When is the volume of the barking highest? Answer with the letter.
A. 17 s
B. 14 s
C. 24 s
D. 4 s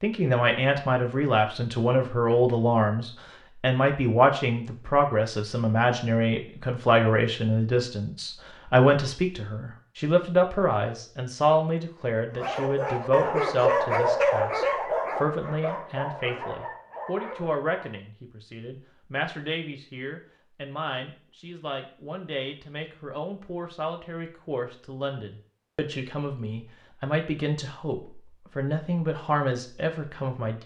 B.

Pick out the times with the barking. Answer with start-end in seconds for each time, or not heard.
12.3-18.0.